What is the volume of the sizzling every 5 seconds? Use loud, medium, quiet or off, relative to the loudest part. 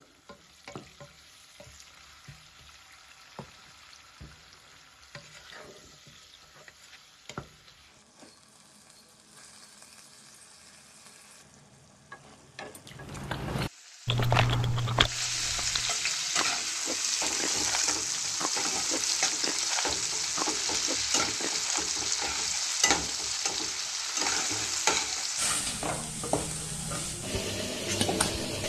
quiet, quiet, quiet, loud, loud, loud.